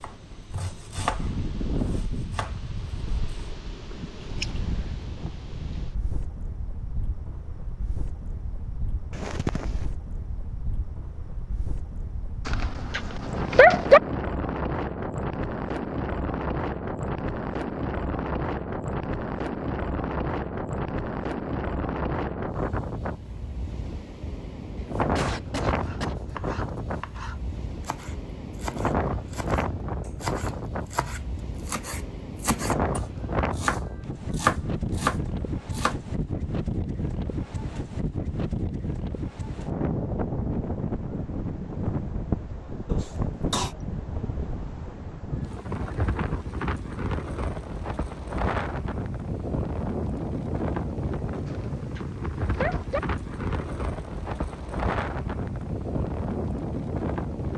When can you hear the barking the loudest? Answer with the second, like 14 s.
14 s.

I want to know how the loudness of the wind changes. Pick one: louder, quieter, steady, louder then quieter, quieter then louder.
louder.